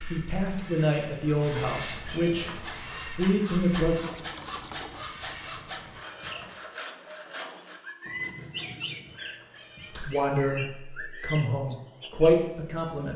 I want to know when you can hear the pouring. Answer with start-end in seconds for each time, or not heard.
4.0-5.1.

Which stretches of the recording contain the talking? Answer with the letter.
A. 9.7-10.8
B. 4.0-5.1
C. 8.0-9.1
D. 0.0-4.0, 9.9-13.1
D.